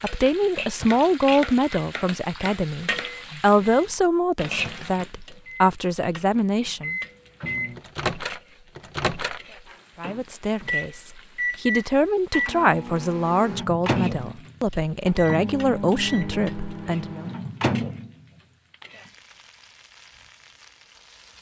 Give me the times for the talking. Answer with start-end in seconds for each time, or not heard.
0.0-7.0, 9.9-17.2.